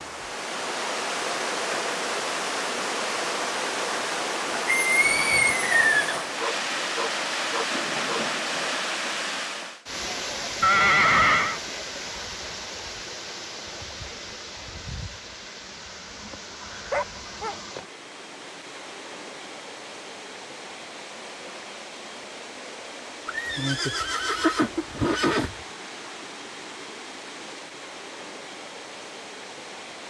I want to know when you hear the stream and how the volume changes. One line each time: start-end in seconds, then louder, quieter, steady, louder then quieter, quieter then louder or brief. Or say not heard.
0.0-30.0 quieter.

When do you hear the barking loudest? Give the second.
17 s.